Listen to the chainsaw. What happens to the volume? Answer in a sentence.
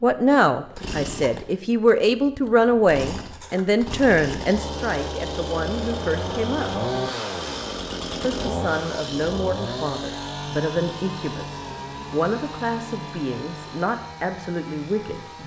The volume of the chainsaw goes up, then down.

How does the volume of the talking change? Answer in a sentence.
The volume of the talking goes down.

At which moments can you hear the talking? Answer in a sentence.
The talking can be heard from 0.0 to 6.8 s and from 8.2 to 15.4 s.